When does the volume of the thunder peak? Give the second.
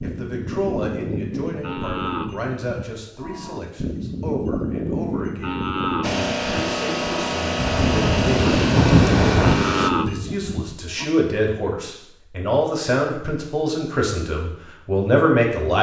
9 s.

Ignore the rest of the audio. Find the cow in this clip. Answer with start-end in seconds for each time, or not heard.
0.0-11.1.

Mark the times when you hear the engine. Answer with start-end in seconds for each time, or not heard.
6.0-9.9.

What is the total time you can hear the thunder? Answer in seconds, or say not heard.
2 s.